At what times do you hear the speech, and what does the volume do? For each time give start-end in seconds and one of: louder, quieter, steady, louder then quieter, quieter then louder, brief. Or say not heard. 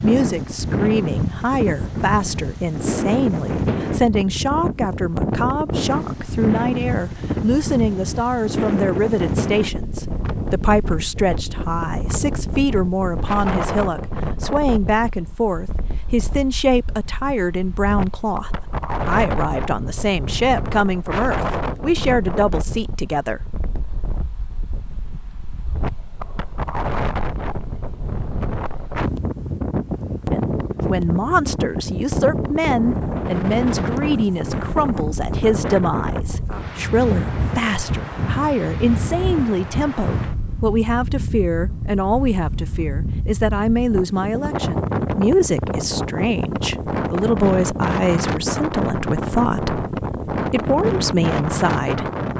0.0-23.4 steady
30.3-52.1 steady.